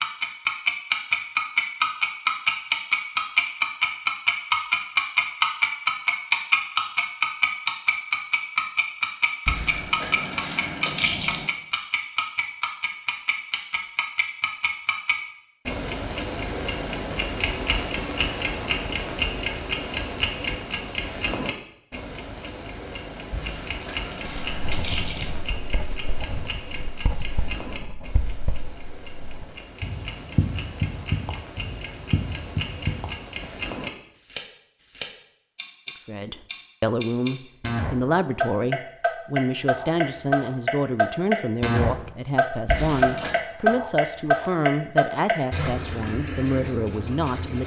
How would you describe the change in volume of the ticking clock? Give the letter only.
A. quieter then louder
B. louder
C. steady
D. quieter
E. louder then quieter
A.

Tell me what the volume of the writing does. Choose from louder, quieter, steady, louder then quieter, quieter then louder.
louder.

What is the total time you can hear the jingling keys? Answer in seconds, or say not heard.
5 s.